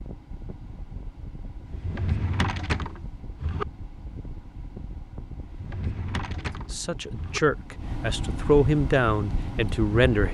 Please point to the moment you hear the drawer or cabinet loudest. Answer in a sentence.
The volume of the drawer or cabinet peaks at 3 seconds.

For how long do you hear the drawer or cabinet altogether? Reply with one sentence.
You can hear the drawer or cabinet for 4 seconds altogether.